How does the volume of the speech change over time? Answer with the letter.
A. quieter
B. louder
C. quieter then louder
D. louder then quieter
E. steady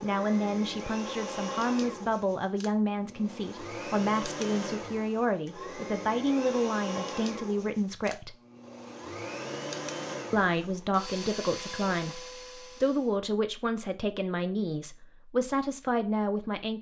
E.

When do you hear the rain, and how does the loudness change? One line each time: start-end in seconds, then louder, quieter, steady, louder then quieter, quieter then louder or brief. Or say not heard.
not heard.